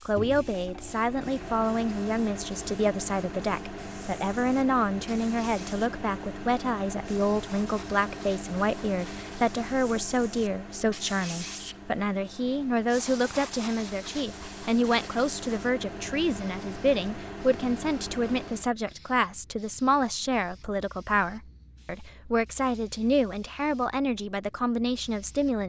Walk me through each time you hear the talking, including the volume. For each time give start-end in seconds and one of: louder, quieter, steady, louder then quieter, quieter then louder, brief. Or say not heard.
0.1-25.6 steady.